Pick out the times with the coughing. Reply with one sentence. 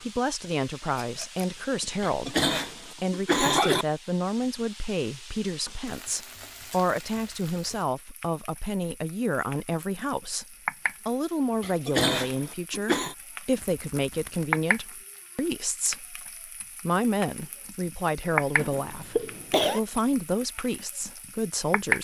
You can hear the coughing from 2.0 to 3.9 s, from 11.6 to 13.2 s and from 18.6 to 19.8 s.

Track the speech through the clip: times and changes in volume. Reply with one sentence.
You can hear the speech from 0.0 to 22.0 s, at a steady volume.